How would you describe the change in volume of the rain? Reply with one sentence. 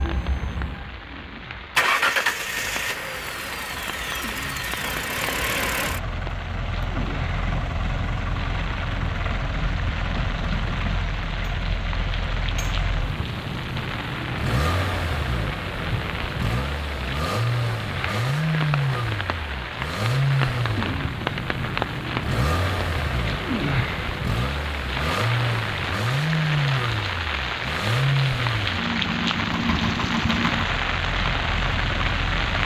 The volume of the rain goes up.